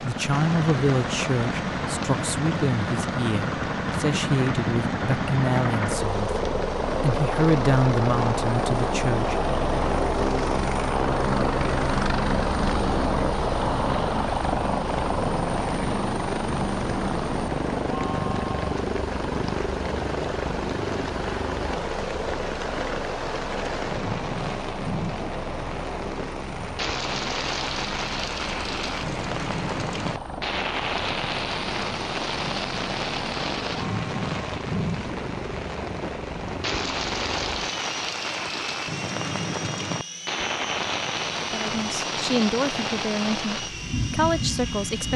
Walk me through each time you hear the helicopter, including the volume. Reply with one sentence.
The helicopter can be heard from 0.0 to 45.1 s, getting quieter.